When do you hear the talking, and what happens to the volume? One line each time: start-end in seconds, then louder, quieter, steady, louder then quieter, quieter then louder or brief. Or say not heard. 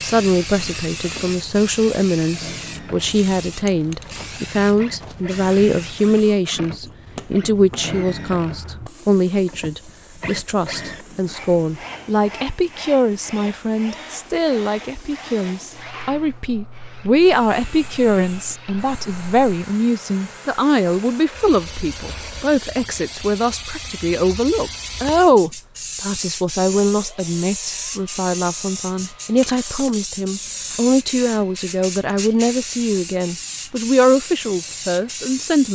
0.0-35.7 steady.